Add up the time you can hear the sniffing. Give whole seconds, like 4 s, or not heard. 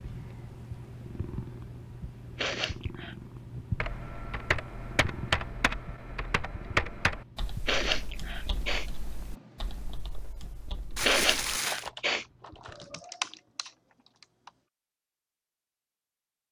3 s.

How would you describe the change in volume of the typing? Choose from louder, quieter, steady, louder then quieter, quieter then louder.
quieter then louder.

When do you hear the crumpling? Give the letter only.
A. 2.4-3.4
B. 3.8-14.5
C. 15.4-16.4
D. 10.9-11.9
D.